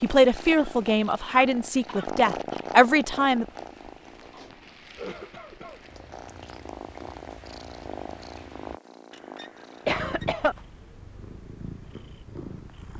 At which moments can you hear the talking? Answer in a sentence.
The talking can be heard from 0.0 to 3.5 s.